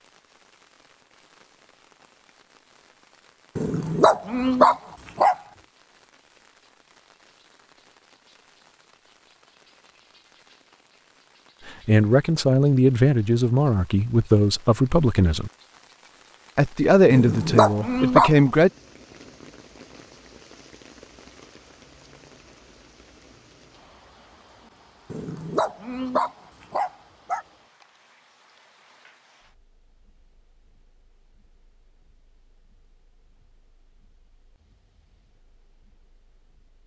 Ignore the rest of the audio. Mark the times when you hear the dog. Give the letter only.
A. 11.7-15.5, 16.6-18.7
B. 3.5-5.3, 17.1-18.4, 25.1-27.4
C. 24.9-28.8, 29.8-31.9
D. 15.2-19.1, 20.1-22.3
B.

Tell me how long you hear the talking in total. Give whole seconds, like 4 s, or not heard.
6 s.